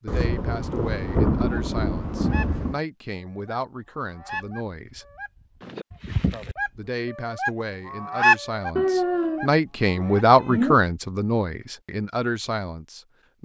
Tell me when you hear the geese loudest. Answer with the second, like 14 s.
8 s.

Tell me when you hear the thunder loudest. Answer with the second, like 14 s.
1 s.